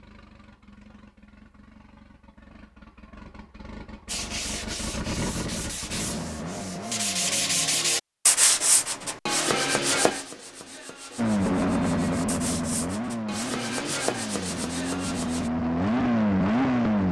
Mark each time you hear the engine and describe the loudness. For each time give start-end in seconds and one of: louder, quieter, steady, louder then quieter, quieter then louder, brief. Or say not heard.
0.0-7.7 louder
11.2-17.0 quieter then louder.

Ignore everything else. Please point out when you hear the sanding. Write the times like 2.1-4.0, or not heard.
4.0-15.5.